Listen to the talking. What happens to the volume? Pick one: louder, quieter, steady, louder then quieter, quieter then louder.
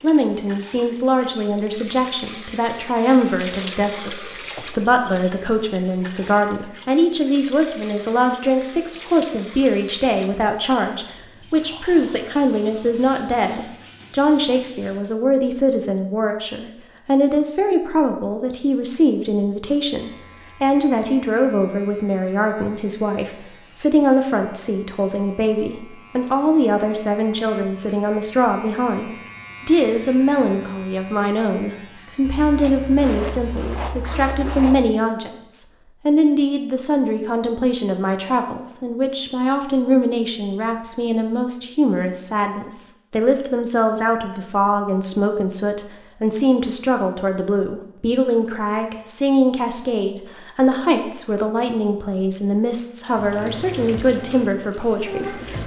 steady.